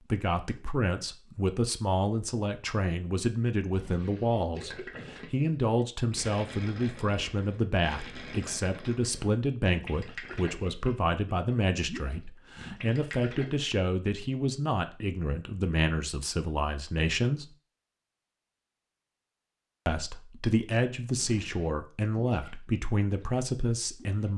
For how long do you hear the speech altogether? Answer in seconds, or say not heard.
22 s.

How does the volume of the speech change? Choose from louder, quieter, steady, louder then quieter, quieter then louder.
steady.